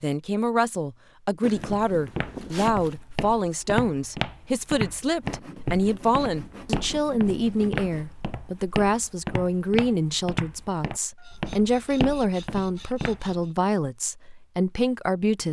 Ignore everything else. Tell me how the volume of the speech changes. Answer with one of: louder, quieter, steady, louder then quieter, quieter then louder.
steady.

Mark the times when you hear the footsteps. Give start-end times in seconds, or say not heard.
1.5-13.4.